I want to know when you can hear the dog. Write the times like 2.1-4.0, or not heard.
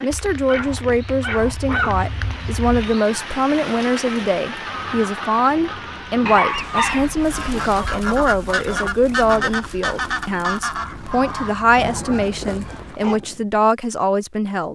0.1-3.0, 6.2-7.8, 10.8-13.2.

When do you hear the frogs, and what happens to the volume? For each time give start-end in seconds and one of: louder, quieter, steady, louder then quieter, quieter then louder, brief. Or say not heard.
not heard.